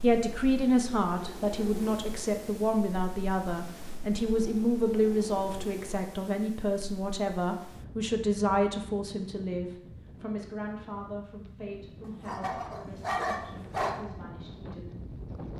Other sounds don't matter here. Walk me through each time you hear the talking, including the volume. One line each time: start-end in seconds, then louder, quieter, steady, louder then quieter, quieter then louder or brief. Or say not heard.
0.0-15.0 quieter.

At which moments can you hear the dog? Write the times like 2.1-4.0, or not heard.
12.2-14.0.